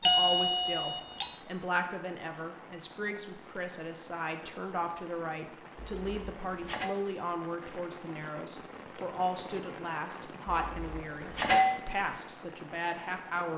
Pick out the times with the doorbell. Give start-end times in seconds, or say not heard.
0.0-1.4, 5.8-7.0, 10.4-11.8.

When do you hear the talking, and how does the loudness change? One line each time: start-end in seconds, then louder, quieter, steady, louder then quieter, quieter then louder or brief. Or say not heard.
0.0-13.5 steady.